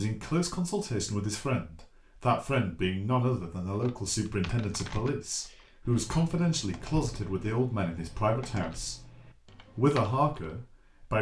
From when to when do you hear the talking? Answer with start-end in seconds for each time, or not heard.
0.0-8.9, 9.8-11.1.